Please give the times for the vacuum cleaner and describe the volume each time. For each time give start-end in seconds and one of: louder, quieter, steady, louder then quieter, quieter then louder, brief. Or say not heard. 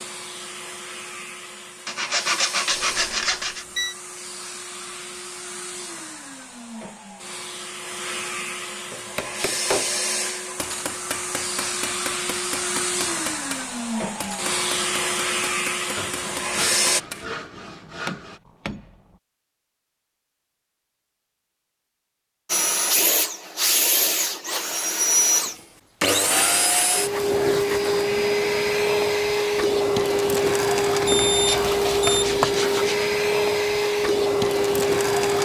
0.0-17.0 louder
22.4-35.4 steady.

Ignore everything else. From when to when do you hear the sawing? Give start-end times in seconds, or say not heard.
1.9-3.6, 15.9-18.4, 31.4-33.1.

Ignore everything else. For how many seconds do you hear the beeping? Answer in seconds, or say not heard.
3 s.